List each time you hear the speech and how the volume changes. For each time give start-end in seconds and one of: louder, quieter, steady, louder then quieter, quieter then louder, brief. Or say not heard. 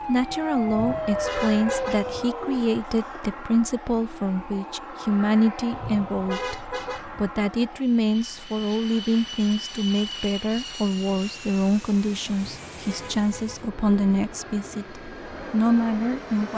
0.1-16.5 steady.